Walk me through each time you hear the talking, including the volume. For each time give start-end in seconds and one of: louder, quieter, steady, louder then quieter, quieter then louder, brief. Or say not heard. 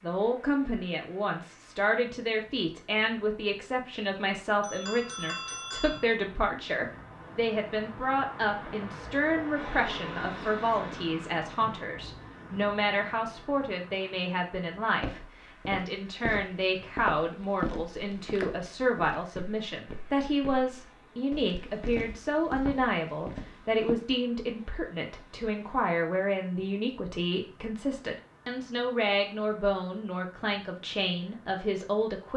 0.0-32.3 steady.